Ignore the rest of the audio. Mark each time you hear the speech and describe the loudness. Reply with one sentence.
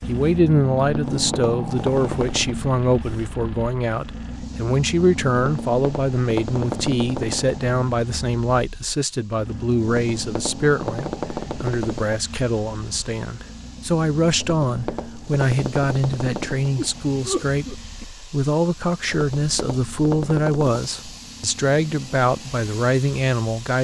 You can hear the speech from 0.1 to 23.7 s, at a steady volume.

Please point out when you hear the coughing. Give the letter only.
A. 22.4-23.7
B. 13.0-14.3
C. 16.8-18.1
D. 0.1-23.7
C.